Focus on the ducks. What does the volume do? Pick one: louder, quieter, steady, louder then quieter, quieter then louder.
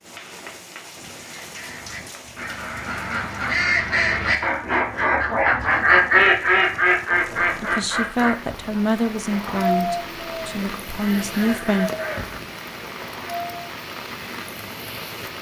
louder then quieter.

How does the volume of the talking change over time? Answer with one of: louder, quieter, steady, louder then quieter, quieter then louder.
quieter then louder.